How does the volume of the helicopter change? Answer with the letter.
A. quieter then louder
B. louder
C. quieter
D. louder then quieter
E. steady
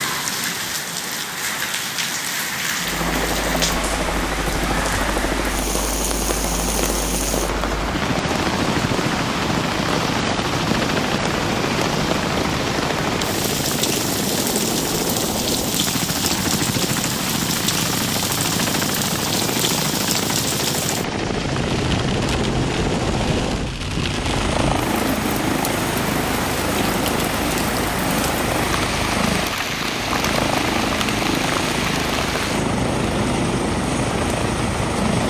E.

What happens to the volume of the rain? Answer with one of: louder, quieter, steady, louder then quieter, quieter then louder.
steady.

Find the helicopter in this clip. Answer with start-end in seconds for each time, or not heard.
2.8-35.2.